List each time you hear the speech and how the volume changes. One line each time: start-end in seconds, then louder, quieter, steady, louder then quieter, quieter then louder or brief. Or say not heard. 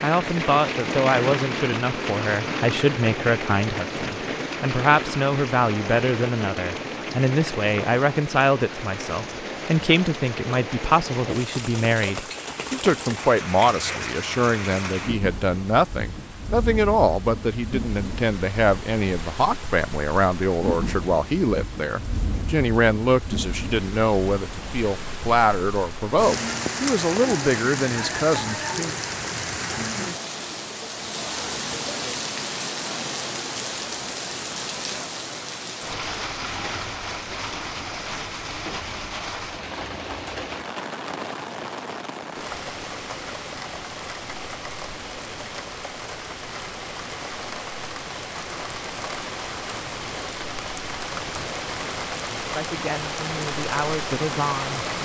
0.0-28.6 steady
52.5-55.0 brief.